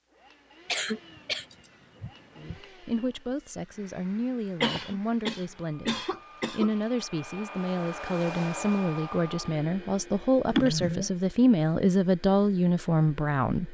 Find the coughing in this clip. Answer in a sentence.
The coughing can be heard from 0.7 to 2.6 s, from 4.6 to 7.0 s and from 10.4 to 11.1 s.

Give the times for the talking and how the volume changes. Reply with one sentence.
You can hear the talking from 2.4 to 13.6 s, getting louder.